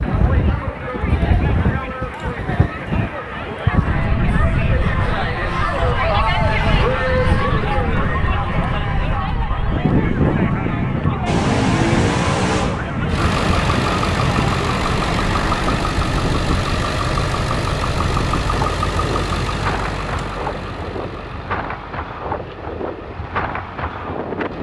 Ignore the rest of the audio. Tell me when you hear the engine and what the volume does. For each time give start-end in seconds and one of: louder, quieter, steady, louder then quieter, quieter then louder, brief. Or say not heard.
11.2-24.5 quieter.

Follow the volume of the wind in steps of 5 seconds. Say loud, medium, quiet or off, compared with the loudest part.
loud, loud, loud, medium, medium.